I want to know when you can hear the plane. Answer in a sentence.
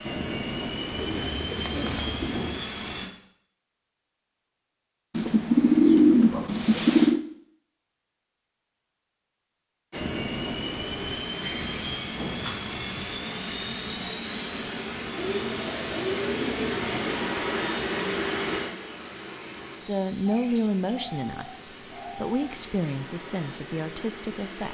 You can hear the plane from 0.0 to 3.1 s and from 9.9 to 24.6 s.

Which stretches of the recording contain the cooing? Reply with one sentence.
The cooing can be heard from 0.9 to 2.6 s, from 5.2 to 7.2 s, from 11.4 to 13.1 s, from 15.2 to 17.1 s and from 20.2 to 22.4 s.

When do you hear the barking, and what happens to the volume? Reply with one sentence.
You can't hear the barking here.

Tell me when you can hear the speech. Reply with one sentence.
The speech can be heard from 19.8 to 24.6 s.